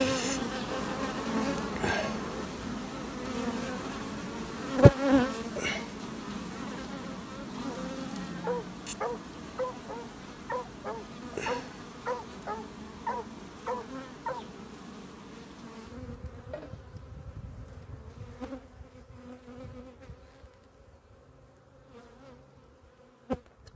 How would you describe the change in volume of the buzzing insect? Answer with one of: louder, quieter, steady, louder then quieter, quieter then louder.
quieter.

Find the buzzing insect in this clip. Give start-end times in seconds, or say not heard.
0.0-23.7.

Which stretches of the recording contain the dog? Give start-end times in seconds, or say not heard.
8.0-14.4.